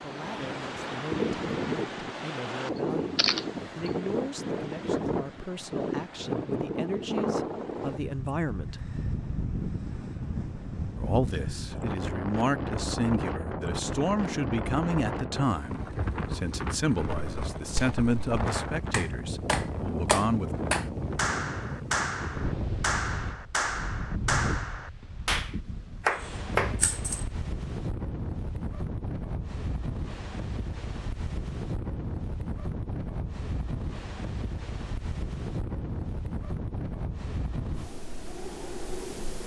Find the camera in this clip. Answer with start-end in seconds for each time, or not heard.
3.1-3.9, 26.1-27.2.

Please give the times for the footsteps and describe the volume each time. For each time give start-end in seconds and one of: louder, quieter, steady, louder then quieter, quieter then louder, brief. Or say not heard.
not heard.